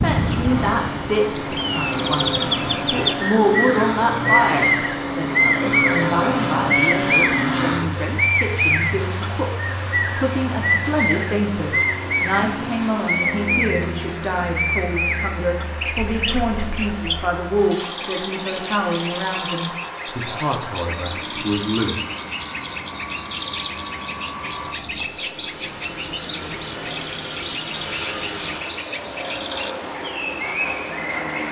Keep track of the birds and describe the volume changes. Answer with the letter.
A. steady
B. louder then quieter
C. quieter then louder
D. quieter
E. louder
D.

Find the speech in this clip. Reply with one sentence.
You can hear the speech from 0.0 to 22.0 s.